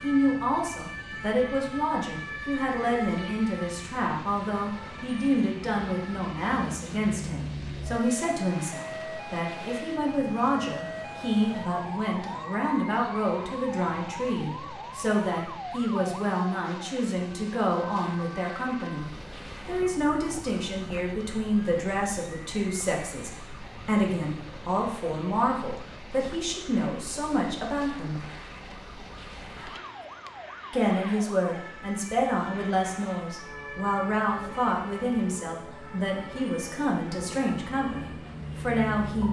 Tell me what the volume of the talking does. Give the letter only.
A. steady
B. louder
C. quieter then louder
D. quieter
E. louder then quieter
A.